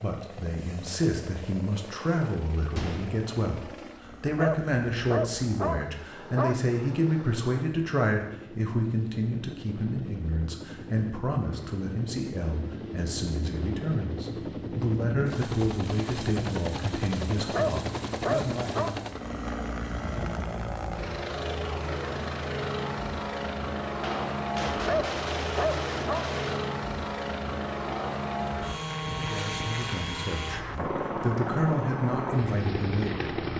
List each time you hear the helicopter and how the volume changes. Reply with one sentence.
You can hear the helicopter from 0.0 to 33.5 s, getting louder.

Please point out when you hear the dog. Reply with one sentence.
You can hear the dog from 4.3 to 6.6 s, from 17.5 to 19.0 s and from 24.9 to 26.3 s.